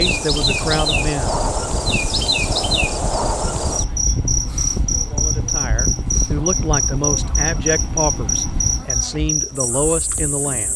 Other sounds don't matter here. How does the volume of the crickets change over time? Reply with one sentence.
The volume of the crickets stays about the same.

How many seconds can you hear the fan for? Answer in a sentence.
The fan can be heard for 9 seconds in total.